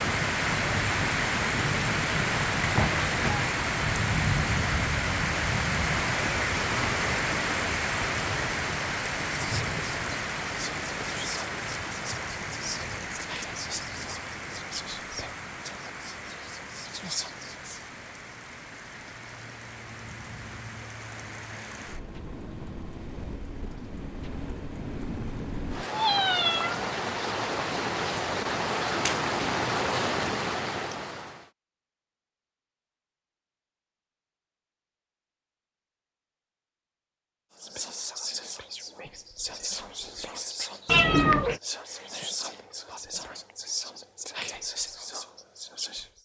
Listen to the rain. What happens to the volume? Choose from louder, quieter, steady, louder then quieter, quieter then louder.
quieter then louder.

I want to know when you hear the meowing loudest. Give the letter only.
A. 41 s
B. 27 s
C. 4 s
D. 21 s
A.